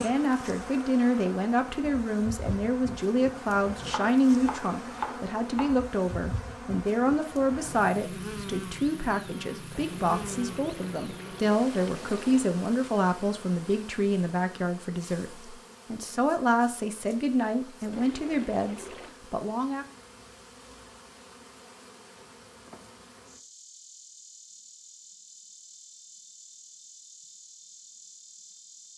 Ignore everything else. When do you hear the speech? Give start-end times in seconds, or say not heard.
0.0-19.9.